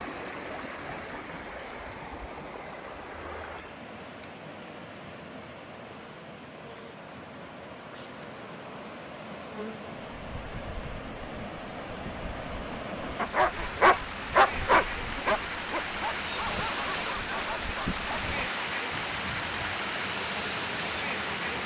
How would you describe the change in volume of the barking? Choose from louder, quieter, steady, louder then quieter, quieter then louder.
quieter.